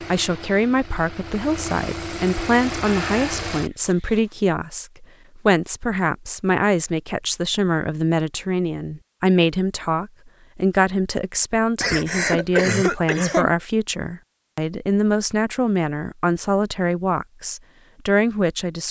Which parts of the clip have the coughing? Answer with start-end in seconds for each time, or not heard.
11.8-13.5.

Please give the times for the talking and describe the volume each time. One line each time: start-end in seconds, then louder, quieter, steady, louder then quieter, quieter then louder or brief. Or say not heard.
0.0-18.8 steady.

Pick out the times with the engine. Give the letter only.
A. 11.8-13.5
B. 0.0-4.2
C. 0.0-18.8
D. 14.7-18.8
B.